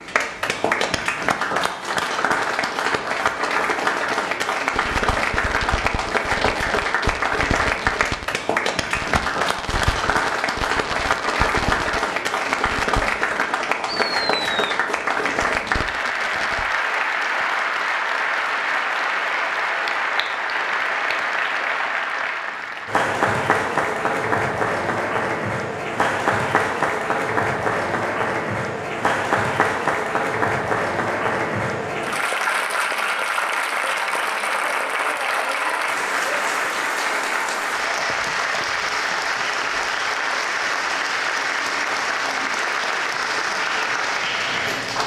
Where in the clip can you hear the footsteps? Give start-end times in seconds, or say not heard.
not heard.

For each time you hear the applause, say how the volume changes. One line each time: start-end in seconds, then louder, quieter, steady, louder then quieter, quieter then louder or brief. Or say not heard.
0.0-45.0 steady.